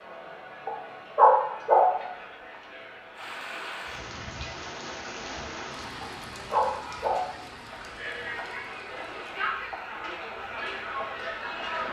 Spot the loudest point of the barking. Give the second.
1 s.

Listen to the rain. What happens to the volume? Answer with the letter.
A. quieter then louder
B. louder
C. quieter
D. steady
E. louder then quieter
C.